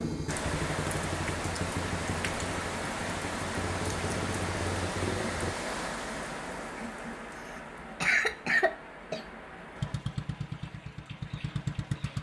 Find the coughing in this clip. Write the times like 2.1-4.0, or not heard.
7.3-9.2.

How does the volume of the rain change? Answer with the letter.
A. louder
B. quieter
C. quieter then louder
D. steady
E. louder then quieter
B.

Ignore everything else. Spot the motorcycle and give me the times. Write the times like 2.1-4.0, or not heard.
0.0-5.5, 9.8-12.1.